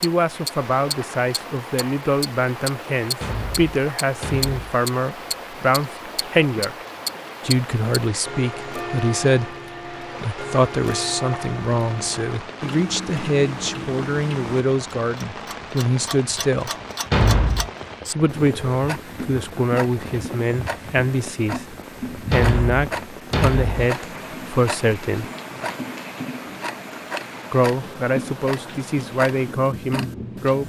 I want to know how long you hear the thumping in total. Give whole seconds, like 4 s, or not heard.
4 s.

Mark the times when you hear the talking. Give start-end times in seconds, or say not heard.
0.0-6.8, 7.5-16.7, 18.1-25.2, 27.5-30.6.